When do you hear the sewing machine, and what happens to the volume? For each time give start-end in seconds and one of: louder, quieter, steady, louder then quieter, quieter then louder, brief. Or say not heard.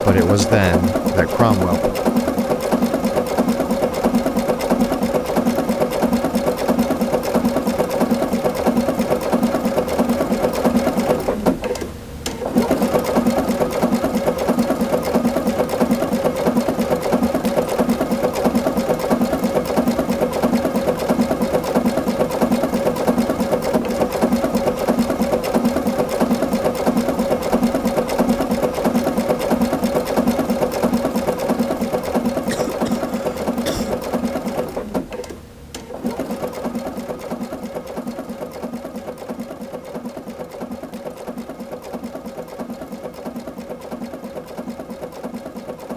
0.0-45.9 quieter.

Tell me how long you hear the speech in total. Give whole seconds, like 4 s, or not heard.
2 s.